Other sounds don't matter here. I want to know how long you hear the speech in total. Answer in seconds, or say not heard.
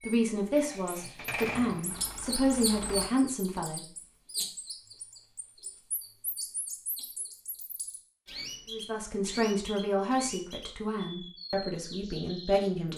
8 s.